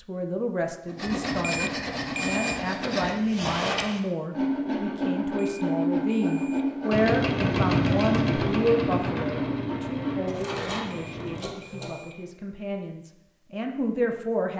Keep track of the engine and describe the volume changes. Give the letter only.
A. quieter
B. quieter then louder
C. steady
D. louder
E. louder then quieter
A.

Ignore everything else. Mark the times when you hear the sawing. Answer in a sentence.
You can hear the sawing from 0.8 to 12.1 s.